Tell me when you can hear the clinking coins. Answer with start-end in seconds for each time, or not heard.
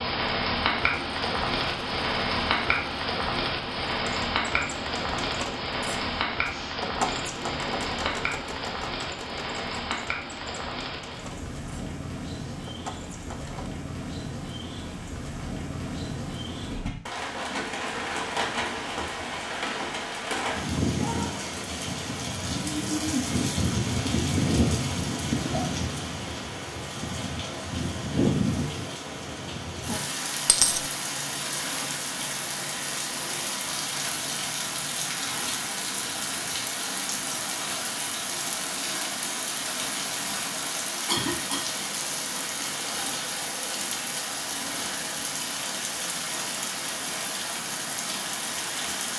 30.4-30.9.